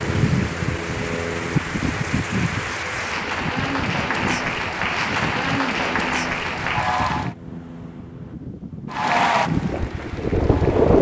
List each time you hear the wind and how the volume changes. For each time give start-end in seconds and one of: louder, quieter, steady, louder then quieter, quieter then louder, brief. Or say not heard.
0.0-10.9 quieter then louder.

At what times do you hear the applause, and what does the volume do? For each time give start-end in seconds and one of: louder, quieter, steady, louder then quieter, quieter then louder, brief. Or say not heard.
0.0-7.3 louder
8.9-10.9 brief.